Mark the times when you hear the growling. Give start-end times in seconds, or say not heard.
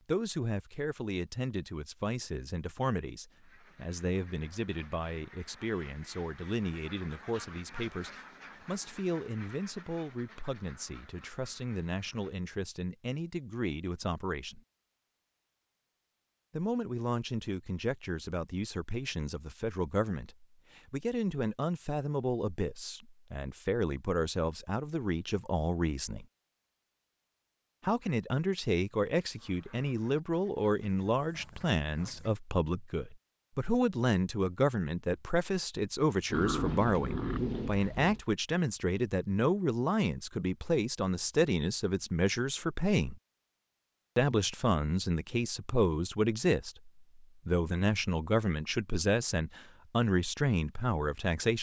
36.3-38.2.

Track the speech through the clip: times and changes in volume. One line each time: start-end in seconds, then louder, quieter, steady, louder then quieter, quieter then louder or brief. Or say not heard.
0.1-14.6 steady
16.5-26.2 steady
27.8-43.2 steady
44.1-51.5 steady.